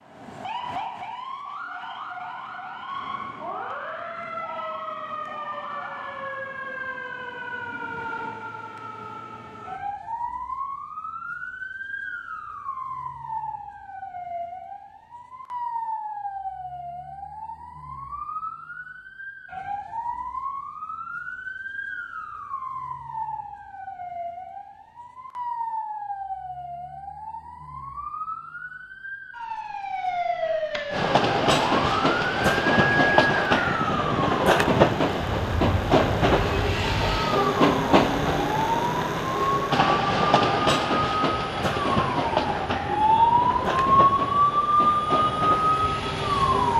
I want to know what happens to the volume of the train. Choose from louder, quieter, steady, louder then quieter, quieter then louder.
quieter.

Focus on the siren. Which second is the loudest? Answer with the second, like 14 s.
44 s.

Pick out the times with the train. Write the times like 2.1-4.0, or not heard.
30.9-46.7.